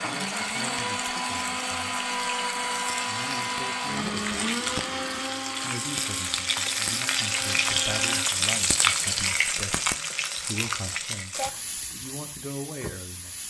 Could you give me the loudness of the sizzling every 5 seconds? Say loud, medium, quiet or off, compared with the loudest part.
medium, loud, medium.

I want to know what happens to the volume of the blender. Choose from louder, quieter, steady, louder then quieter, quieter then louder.
quieter.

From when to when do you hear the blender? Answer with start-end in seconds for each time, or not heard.
0.0-8.3.